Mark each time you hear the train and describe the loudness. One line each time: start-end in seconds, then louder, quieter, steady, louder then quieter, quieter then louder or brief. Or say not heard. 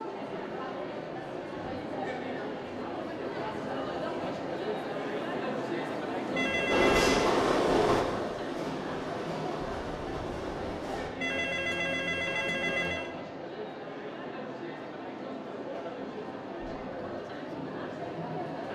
6.7-11.1 quieter.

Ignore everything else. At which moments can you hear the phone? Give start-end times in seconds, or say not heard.
6.3-7.3, 11.2-13.1.